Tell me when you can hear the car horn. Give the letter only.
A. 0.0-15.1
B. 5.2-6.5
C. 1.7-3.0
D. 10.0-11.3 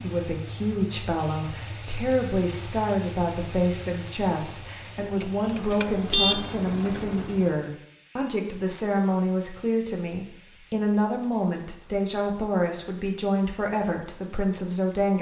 B.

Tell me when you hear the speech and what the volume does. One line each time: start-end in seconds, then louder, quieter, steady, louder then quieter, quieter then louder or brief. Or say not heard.
0.0-15.1 steady.